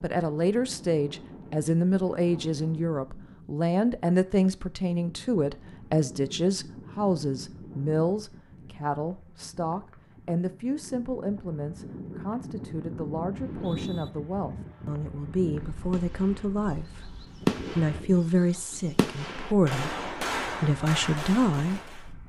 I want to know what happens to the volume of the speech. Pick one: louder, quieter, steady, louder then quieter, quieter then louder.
quieter then louder.